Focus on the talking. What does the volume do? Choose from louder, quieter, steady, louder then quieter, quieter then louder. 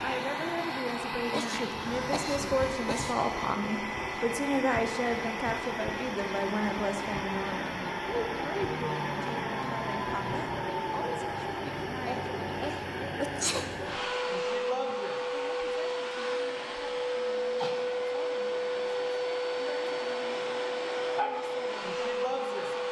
quieter.